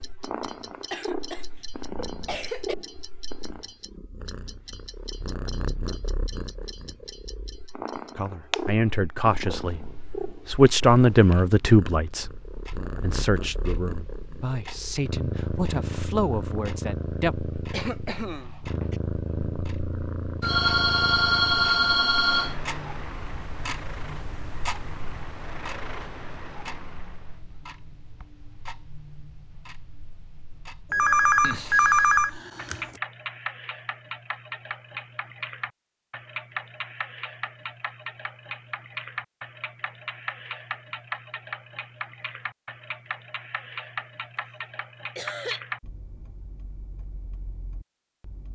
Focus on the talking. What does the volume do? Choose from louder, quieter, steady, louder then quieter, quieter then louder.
louder then quieter.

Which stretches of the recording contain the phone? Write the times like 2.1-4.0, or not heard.
20.4-22.6, 30.9-32.9.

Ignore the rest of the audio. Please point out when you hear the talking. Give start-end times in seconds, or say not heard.
8.2-17.4.